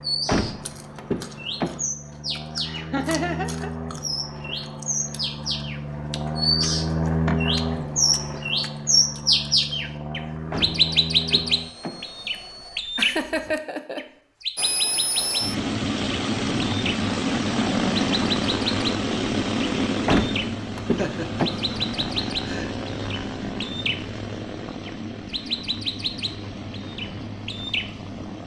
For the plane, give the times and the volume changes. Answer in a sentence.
The plane can be heard from 0.0 to 12.8 s, getting louder then quieter; and from 14.6 to 28.4 s, getting quieter.